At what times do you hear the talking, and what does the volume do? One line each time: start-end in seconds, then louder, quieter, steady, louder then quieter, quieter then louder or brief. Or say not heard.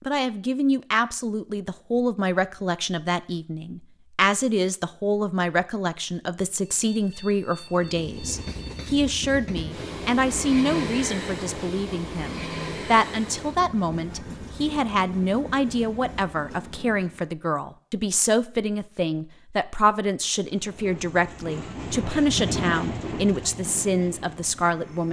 0.0-25.0 steady.